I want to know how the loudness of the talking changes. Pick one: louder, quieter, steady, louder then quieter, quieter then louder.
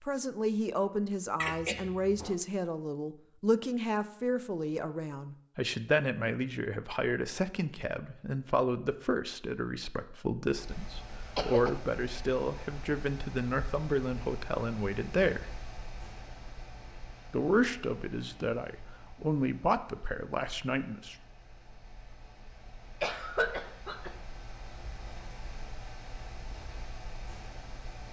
steady.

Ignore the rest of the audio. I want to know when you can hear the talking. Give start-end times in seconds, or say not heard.
0.1-15.5, 17.3-21.1.